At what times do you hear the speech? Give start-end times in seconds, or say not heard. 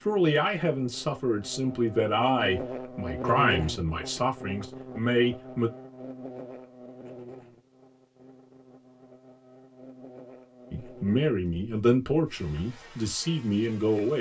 0.1-5.7, 10.7-14.1.